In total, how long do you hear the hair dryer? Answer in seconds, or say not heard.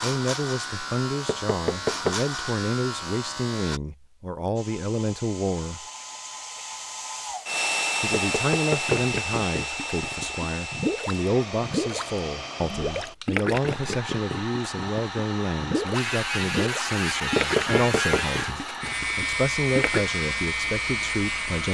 17 s.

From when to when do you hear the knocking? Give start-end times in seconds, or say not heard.
1.2-2.2, 8.3-9.1, 17.4-18.3.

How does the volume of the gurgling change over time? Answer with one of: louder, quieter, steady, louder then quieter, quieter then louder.
steady.